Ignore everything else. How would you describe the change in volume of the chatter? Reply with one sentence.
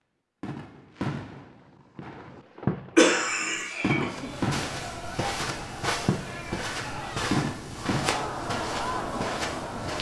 The volume of the chatter goes up.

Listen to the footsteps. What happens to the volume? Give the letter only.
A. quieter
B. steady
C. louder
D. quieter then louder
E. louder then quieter
B.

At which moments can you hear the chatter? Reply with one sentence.
The chatter can be heard from 3.7 to 9.9 s.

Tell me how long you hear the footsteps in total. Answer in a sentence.
The footsteps can be heard for 6 seconds in total.